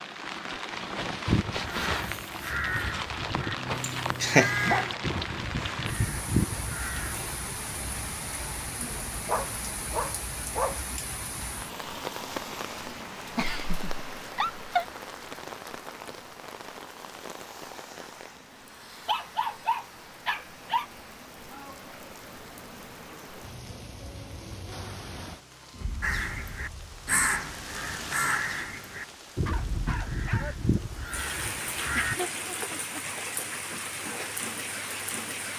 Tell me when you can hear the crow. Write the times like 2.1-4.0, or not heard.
1.2-7.4, 26.0-32.1.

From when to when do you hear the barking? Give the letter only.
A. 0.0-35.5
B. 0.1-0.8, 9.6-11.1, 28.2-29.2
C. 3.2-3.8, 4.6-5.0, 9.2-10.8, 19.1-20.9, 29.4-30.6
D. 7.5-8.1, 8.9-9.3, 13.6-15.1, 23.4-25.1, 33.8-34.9
C.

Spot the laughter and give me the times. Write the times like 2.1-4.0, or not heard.
3.8-4.5, 13.3-14.8, 31.9-33.0.